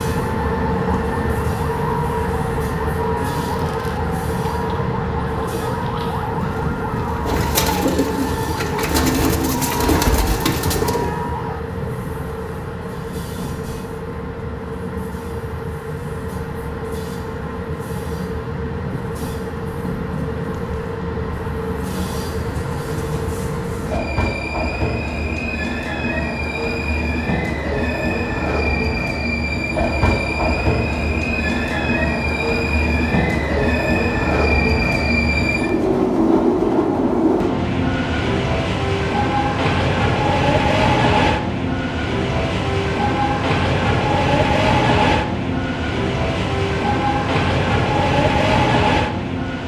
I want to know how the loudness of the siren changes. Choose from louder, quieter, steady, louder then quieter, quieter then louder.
steady.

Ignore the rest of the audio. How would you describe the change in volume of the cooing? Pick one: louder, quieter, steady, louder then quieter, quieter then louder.
louder.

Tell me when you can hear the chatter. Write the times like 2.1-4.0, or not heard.
not heard.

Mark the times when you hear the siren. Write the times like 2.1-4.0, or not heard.
0.0-11.7.